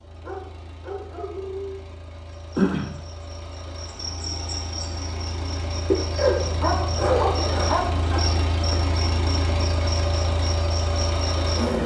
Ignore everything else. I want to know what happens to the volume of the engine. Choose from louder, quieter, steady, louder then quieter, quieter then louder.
louder.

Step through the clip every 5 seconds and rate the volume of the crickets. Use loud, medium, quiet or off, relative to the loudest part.
loud, loud, medium.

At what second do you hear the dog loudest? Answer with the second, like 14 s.
7 s.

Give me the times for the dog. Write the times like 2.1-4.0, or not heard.
0.2-1.9, 6.2-8.2.